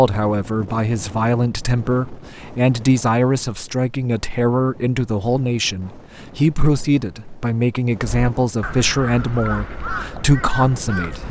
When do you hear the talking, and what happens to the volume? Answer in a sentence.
The talking can be heard from 0.0 to 11.2 s, at a steady volume.